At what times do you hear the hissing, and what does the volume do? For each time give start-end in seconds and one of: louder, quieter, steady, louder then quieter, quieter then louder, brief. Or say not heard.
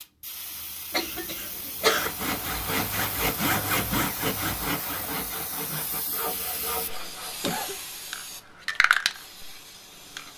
0.0-10.3 louder.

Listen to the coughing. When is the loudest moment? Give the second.
2 s.